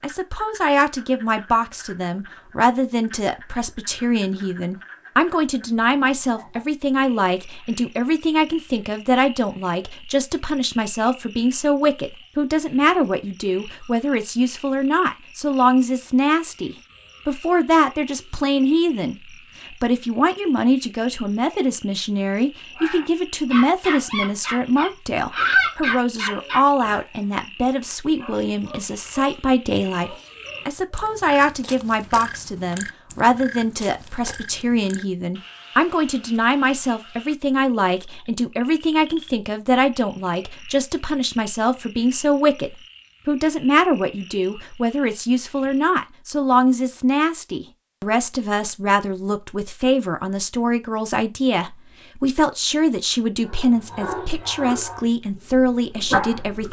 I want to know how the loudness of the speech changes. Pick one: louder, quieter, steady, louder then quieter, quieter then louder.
steady.